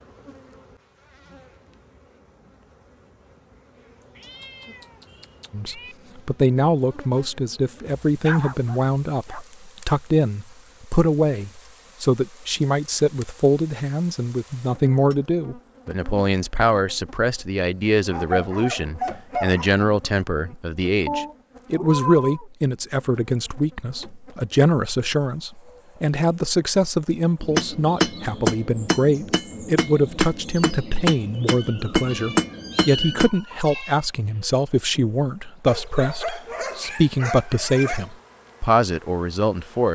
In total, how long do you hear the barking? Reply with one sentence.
You can hear the barking for 6 seconds altogether.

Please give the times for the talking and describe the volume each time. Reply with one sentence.
You can hear the talking from 5.5 to 39.9 s, at a steady volume.